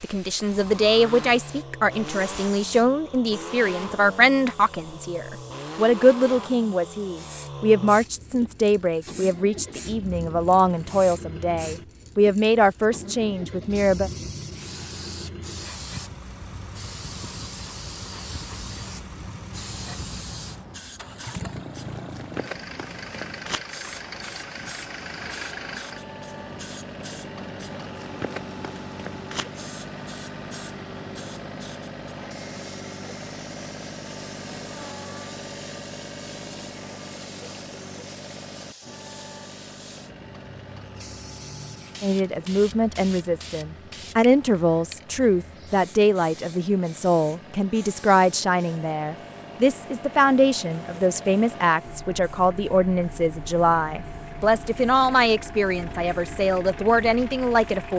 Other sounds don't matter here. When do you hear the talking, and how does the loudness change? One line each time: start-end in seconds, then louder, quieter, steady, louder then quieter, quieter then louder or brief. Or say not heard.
0.0-14.1 steady
42.0-57.9 steady.